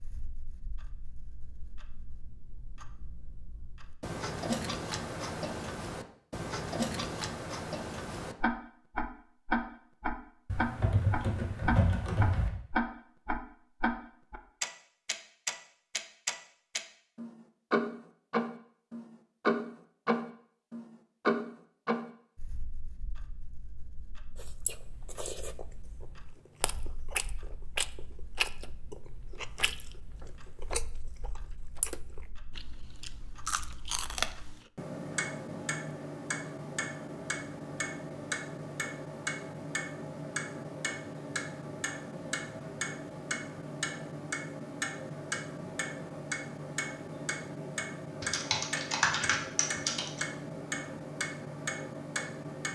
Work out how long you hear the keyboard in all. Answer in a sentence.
You can hear the keyboard for 4 seconds altogether.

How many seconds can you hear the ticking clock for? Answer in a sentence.
You can hear the ticking clock for 53 seconds altogether.